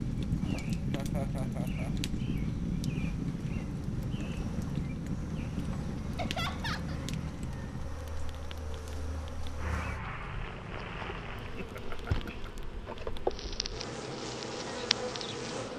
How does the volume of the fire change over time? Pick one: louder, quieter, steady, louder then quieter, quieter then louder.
quieter.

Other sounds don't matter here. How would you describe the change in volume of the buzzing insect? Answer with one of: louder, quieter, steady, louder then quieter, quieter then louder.
louder.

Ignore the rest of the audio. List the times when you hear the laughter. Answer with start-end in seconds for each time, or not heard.
0.9-1.9, 6.2-7.0, 11.6-12.5.